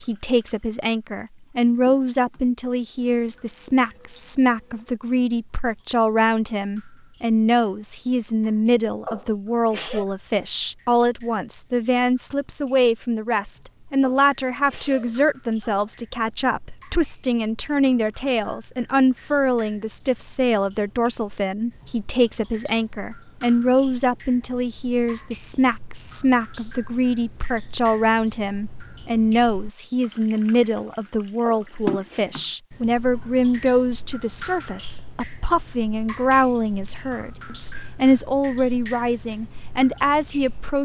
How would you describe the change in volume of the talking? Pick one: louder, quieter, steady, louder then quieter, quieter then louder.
steady.